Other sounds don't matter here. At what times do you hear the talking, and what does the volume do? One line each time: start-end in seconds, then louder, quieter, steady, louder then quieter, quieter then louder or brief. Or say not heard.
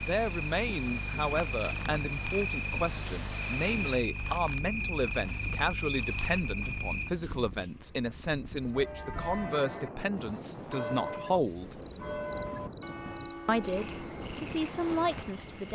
0.1-11.8 steady
13.4-15.7 brief.